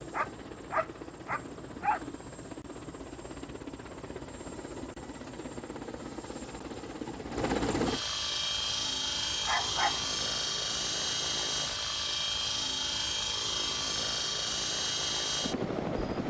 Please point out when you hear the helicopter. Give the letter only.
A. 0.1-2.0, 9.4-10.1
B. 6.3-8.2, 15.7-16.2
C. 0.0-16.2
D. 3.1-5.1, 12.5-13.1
C.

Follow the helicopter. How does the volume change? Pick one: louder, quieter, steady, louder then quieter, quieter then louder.
louder.